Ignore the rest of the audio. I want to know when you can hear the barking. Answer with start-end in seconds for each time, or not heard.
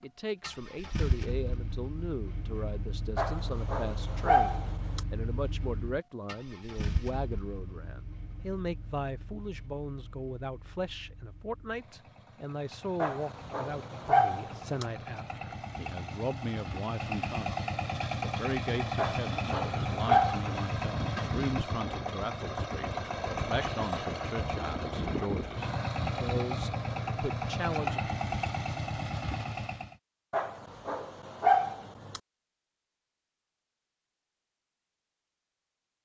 3.1-5.0, 13.0-14.8, 18.9-20.6, 30.3-32.2.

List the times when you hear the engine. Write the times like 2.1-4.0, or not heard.
0.4-29.9.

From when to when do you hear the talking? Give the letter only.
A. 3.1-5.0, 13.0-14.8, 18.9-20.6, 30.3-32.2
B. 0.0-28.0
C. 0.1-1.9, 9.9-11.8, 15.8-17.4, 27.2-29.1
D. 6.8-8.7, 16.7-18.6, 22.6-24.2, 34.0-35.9
B.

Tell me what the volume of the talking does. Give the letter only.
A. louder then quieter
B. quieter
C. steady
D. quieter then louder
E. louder
C.